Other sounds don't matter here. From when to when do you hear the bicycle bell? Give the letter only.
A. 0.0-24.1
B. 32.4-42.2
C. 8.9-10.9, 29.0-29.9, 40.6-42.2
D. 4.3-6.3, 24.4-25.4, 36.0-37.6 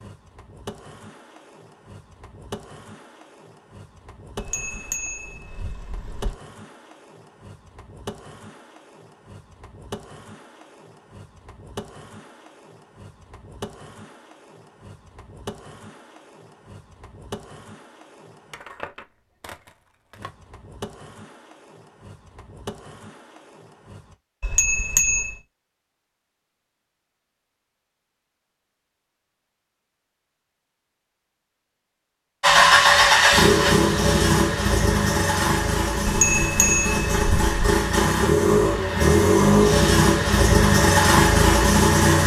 D.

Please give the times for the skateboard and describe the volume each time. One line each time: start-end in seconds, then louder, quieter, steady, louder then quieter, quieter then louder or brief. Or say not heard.
0.0-24.1 steady.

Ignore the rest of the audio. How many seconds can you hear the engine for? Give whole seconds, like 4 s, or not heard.
10 s.